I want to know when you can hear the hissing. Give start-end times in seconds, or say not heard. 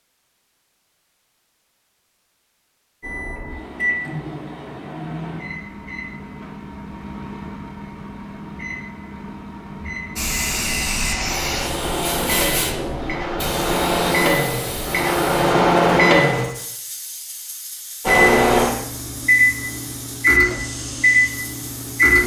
10.2-22.2.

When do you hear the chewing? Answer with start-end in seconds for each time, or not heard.
not heard.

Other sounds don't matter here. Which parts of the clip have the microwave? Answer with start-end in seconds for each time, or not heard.
3.0-16.4, 18.1-22.2.